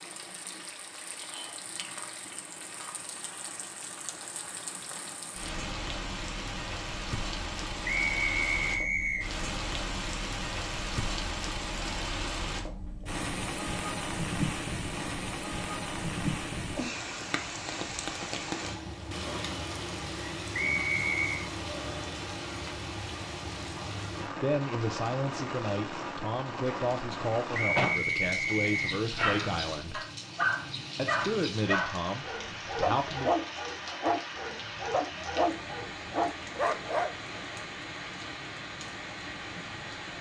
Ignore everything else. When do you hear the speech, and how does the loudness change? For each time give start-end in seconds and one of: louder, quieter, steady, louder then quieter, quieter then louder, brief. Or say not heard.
24.4-30.0 steady
30.9-33.3 brief.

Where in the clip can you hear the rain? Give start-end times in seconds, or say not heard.
0.0-40.1.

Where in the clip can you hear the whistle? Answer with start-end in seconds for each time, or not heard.
7.8-9.3, 20.5-21.5, 27.5-29.0.